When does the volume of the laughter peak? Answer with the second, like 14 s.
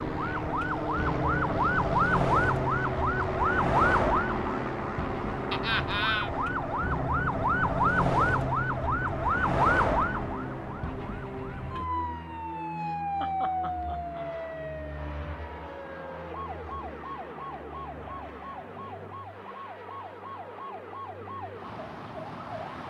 6 s.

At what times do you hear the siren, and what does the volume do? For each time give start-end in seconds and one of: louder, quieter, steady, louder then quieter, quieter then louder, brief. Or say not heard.
0.0-22.8 quieter.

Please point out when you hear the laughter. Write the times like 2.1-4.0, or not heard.
5.5-6.3, 12.1-14.2.